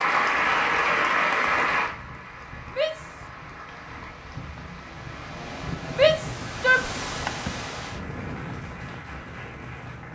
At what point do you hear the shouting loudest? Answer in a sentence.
The loudest moment of the shouting is at 6 seconds.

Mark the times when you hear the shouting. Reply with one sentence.
The shouting can be heard from 2.6 to 3.2 s and from 5.9 to 6.9 s.